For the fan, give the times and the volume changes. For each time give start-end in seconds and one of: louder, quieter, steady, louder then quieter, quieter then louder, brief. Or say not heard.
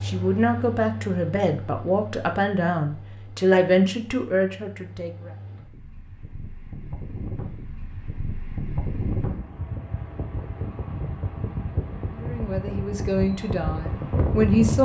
0.0-14.8 quieter then louder.